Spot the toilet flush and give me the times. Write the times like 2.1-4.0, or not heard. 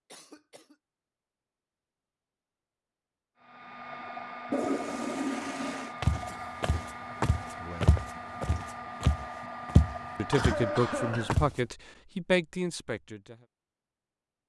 4.5-6.0.